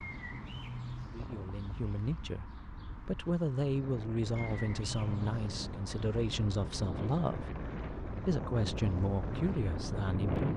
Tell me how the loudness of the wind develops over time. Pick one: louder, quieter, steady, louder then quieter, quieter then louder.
louder.